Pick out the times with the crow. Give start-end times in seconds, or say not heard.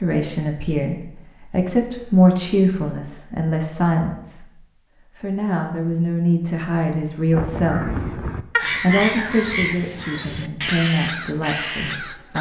7.3-12.3.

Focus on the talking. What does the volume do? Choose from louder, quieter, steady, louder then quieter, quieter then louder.
quieter.